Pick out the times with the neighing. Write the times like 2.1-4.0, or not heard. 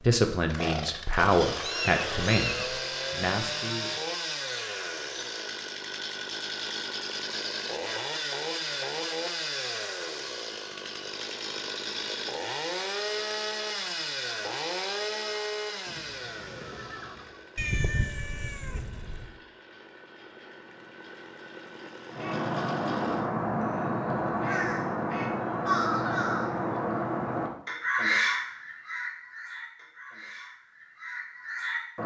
15.8-17.4.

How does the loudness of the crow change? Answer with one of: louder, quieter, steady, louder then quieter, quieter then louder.
quieter.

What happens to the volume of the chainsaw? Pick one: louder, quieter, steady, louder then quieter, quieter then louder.
quieter.